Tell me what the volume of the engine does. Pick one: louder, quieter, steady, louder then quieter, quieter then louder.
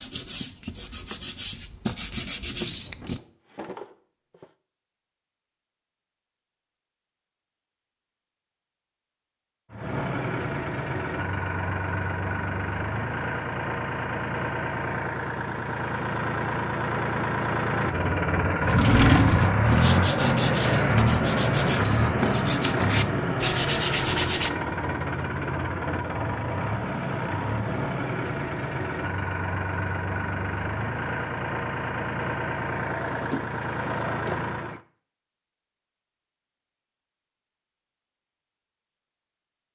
louder then quieter.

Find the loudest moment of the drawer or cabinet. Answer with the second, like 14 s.
19 s.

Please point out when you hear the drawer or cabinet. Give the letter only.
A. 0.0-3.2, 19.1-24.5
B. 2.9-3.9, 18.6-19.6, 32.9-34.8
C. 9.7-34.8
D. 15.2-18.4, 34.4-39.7
B.